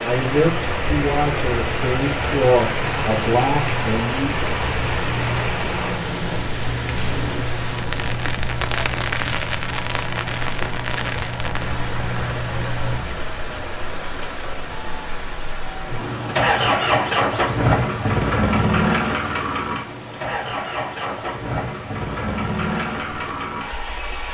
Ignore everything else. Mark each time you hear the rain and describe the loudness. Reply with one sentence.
You can hear the rain from 0.0 to 24.2 s, getting quieter.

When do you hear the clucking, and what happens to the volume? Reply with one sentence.
The clucking can't be heard in this clip.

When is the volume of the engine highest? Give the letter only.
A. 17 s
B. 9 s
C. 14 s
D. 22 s
A.